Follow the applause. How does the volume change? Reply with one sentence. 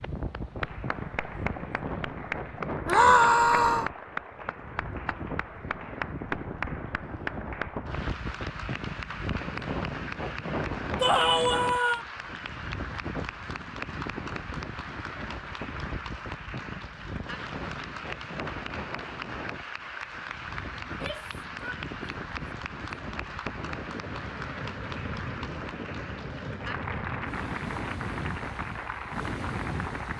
The volume of the applause stays about the same.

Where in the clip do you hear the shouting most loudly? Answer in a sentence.
The loudest moment of the shouting is at 3 seconds.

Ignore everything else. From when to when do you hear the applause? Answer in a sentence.
You can hear the applause from 0.0 to 30.1 s.